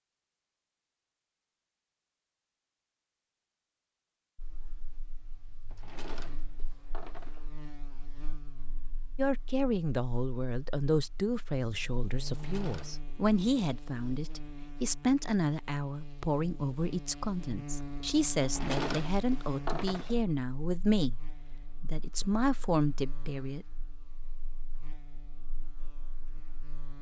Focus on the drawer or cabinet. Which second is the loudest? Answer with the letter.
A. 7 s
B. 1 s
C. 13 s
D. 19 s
D.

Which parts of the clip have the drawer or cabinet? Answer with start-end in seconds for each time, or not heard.
5.7-7.5, 12.2-13.0, 18.4-20.2.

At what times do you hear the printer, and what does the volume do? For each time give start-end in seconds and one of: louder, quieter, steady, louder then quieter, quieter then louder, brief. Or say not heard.
not heard.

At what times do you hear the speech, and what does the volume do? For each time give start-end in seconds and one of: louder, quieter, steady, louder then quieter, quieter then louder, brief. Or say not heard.
9.2-21.2 steady
21.8-23.6 brief.